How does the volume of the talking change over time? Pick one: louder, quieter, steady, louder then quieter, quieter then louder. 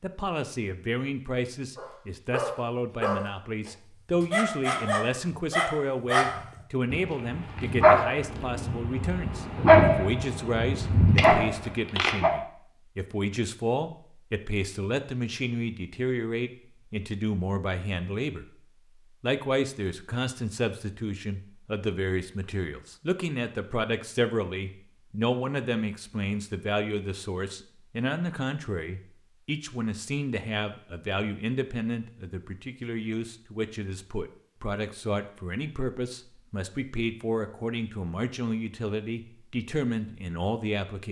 steady.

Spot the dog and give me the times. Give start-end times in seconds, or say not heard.
1.8-12.3.